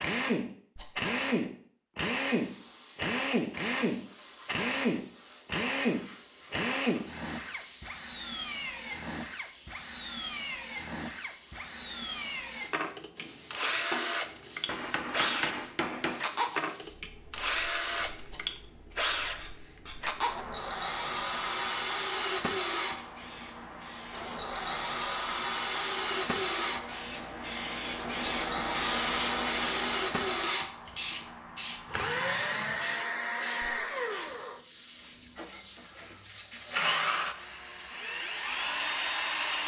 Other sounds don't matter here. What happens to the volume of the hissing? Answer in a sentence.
The volume of the hissing goes up, then down.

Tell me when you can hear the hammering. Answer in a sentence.
You can hear the hammering from 13.6 to 16.2 s.